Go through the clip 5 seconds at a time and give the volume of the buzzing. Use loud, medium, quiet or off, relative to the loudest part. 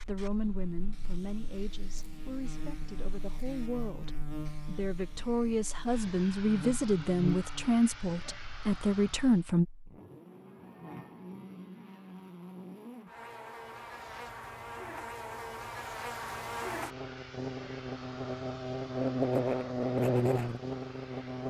quiet, medium, quiet, loud, loud.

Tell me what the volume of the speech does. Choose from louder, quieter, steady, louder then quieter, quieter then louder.
louder.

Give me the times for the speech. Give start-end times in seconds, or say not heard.
0.0-9.7.